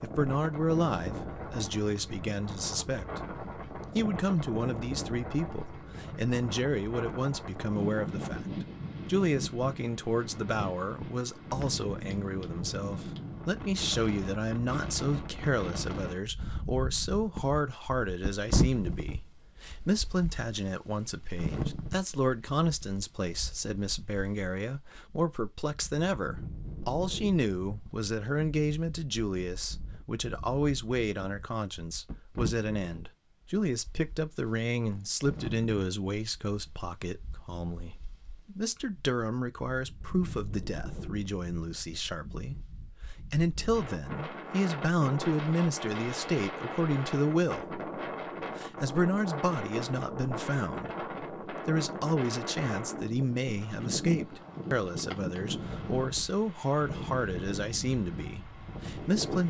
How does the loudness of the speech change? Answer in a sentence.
The loudness of the speech stays about the same.